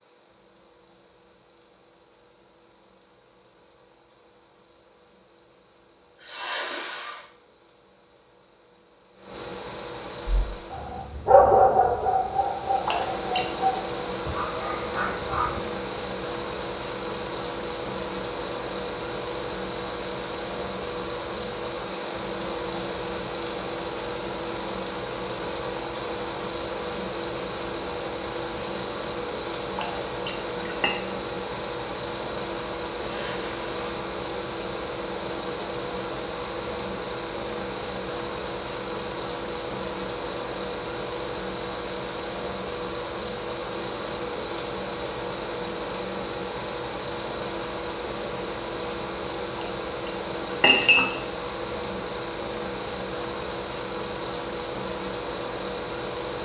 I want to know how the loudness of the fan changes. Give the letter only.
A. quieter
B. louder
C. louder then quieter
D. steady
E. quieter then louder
B.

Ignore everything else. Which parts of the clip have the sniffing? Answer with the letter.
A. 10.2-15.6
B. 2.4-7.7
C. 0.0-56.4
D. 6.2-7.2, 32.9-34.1
D.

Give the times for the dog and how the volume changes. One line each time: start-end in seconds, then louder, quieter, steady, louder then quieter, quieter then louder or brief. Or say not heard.
10.2-15.6 quieter.